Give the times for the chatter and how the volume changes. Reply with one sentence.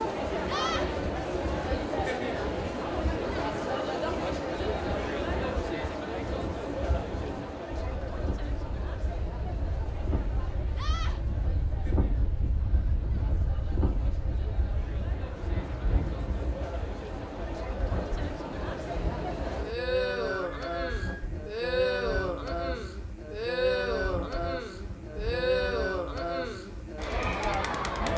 You can hear the chatter from 0.0 to 28.1 s, getting quieter then louder.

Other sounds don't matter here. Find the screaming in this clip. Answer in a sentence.
You can hear the screaming from 0.5 to 0.9 s, from 10.8 to 11.2 s and from 20.4 to 21.3 s.